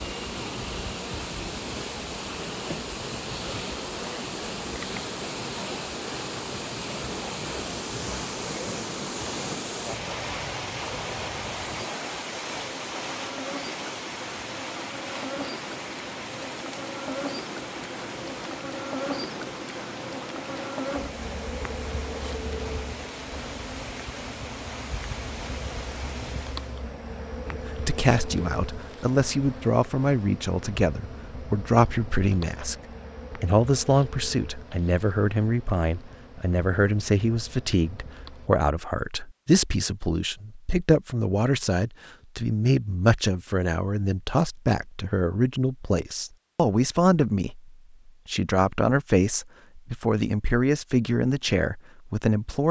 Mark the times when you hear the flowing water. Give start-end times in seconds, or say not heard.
0.0-26.8.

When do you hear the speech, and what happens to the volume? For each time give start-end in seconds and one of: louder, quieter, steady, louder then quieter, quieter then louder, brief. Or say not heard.
27.4-52.6 steady.